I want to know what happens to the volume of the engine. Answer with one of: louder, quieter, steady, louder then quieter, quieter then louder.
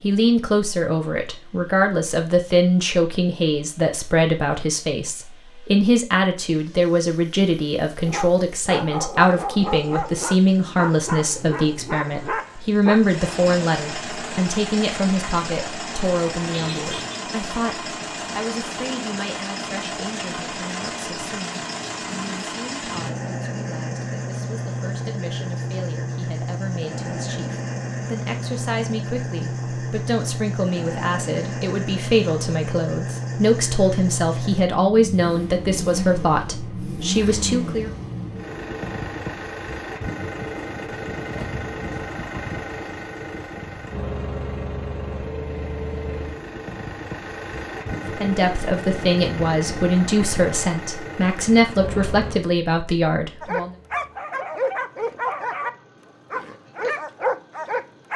louder then quieter.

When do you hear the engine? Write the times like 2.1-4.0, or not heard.
0.0-58.1.